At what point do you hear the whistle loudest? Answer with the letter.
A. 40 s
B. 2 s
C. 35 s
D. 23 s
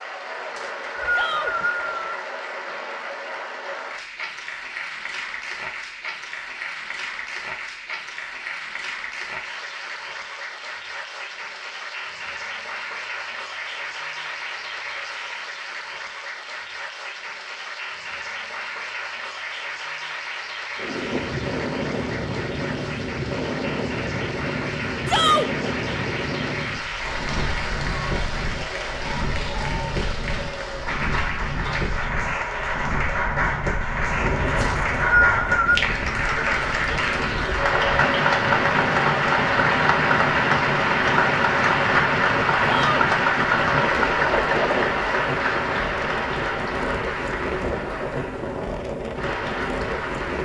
C.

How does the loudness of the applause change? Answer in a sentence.
The loudness of the applause goes up.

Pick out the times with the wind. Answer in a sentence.
You can hear the wind from 20.8 to 50.3 s.